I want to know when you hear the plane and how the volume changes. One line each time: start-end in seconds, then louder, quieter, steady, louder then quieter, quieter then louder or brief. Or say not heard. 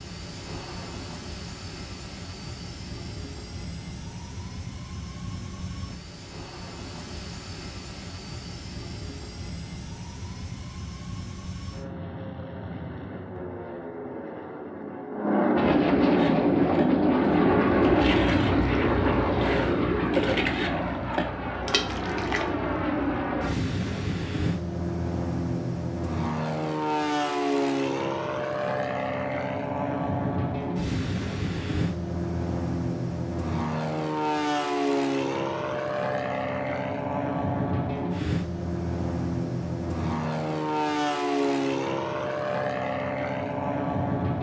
0.0-44.3 louder.